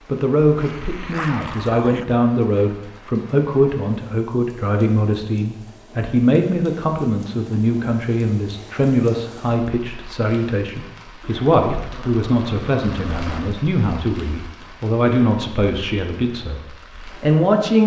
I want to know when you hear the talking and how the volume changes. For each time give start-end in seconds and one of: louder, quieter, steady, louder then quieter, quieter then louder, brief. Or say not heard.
0.1-17.8 steady.